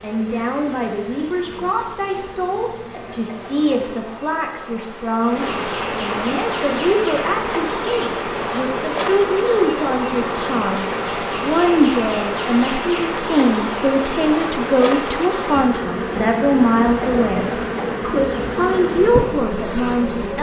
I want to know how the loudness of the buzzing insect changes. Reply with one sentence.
The volume of the buzzing insect goes up.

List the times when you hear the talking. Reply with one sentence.
The talking can be heard from 0.0 to 20.3 s.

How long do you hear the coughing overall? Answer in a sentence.
You can hear the coughing for 2 seconds altogether.